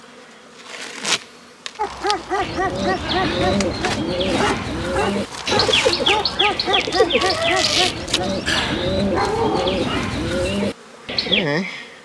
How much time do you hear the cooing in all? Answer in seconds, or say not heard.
9 s.